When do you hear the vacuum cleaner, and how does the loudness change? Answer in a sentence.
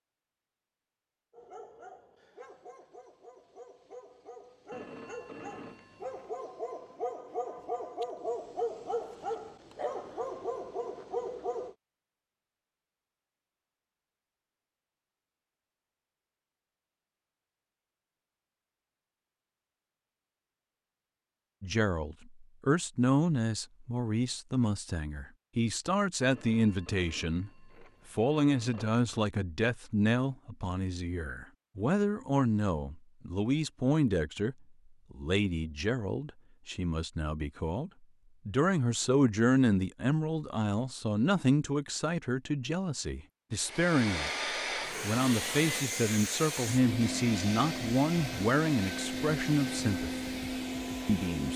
You can hear the vacuum cleaner from 43.6 to 51.5 s, at a steady volume.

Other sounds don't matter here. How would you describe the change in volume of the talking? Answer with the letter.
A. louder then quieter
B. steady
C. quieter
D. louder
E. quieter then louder
B.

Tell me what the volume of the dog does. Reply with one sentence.
The volume of the dog goes up.